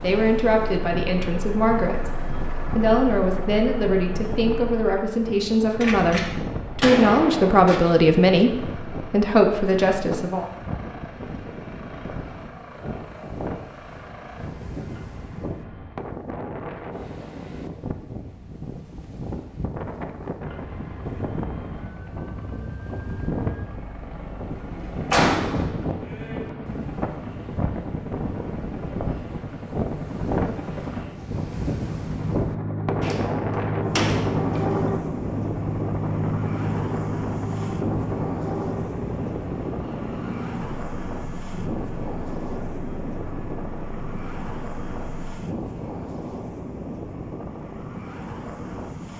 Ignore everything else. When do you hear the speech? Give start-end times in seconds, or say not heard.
0.0-10.4.